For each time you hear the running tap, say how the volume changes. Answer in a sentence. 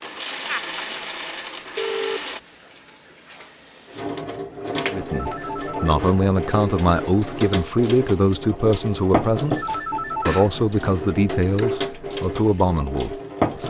You can hear the running tap from 0.0 to 13.6 s, getting louder.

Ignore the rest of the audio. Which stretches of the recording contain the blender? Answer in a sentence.
The blender can be heard from 0.0 to 2.4 s.